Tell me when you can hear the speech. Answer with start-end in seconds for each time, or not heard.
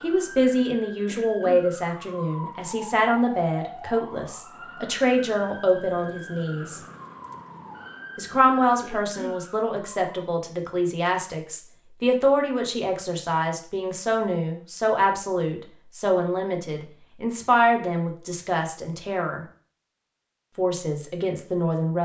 0.0-6.8, 8.2-19.4, 20.6-22.0.